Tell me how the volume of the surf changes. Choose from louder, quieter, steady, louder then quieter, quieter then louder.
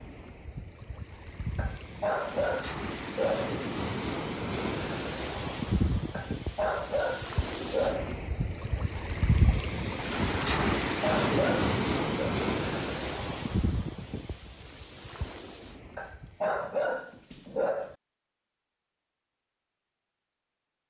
louder then quieter.